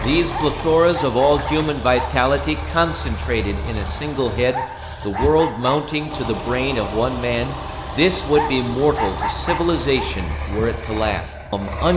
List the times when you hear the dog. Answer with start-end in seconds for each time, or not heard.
0.2-2.1, 4.5-5.8, 8.3-10.1.